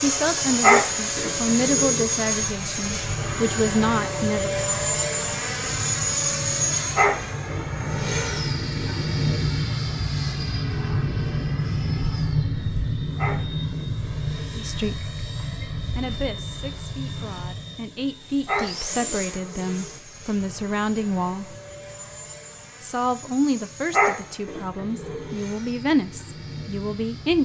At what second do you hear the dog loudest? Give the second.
1 s.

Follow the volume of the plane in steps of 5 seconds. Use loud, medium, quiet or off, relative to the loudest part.
loud, loud, loud, medium, quiet, quiet.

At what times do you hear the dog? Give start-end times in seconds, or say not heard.
0.6-2.1, 7.0-8.4, 13.2-14.6, 18.4-19.9, 23.9-25.4.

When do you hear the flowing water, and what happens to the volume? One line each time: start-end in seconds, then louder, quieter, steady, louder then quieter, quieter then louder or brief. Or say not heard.
not heard.